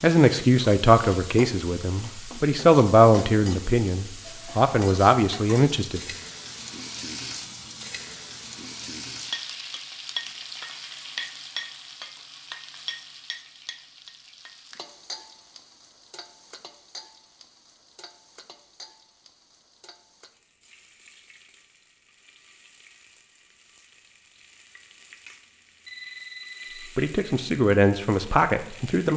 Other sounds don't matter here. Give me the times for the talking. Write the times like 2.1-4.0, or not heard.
0.0-6.1, 26.9-29.1.